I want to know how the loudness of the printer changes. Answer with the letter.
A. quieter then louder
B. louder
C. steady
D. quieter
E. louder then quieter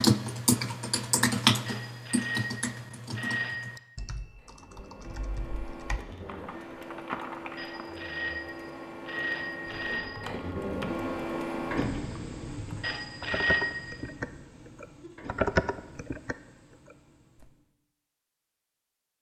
E.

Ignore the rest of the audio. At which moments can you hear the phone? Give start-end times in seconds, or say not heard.
1.6-3.8, 7.5-10.3, 12.8-14.1.